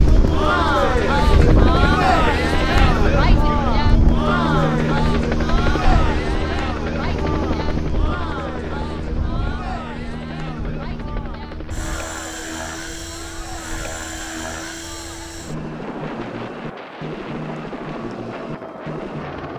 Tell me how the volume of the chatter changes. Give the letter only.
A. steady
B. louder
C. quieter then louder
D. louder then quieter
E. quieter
E.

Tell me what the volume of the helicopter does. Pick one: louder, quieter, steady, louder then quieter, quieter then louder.
quieter.